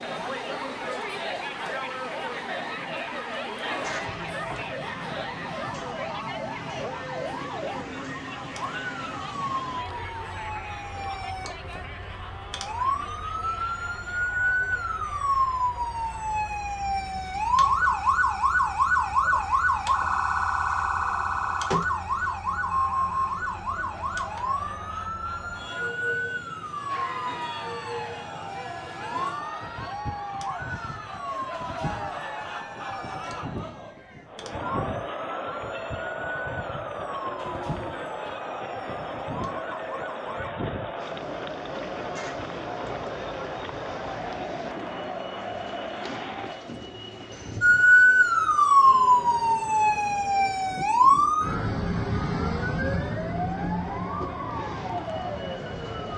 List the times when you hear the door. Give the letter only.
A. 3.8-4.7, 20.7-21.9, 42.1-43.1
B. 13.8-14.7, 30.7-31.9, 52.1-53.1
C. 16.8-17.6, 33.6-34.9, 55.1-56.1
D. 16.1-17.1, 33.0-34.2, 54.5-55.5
A.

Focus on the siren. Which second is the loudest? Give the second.
48 s.